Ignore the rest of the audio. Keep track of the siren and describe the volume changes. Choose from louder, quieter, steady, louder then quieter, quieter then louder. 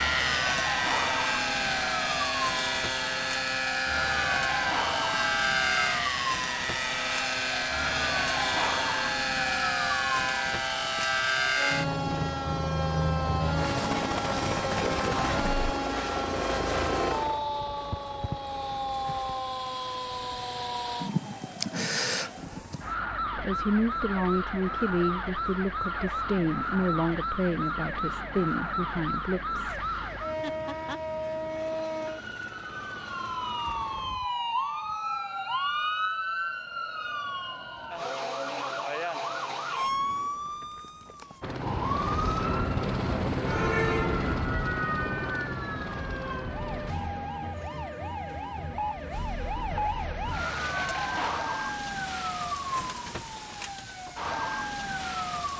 steady.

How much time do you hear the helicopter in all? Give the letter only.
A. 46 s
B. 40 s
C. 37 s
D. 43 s
B.